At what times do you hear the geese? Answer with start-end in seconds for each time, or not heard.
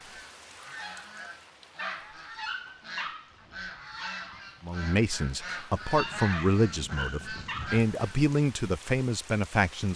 0.0-8.2.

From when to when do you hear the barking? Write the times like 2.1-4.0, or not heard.
1.8-3.5, 6.3-7.8.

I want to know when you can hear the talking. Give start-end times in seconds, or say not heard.
4.6-9.9.